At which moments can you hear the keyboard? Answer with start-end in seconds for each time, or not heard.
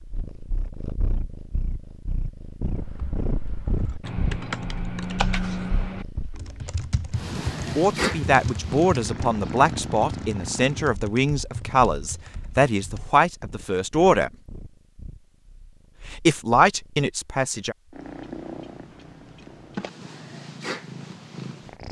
2.6-13.1.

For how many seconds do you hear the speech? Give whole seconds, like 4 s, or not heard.
8 s.